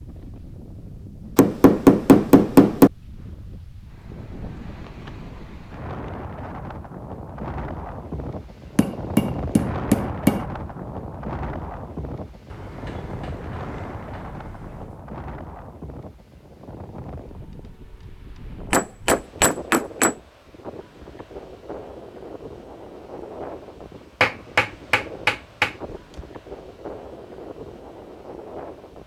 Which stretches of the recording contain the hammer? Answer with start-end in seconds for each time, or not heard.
1.4-2.9, 8.8-10.4, 18.7-20.1, 24.2-25.7.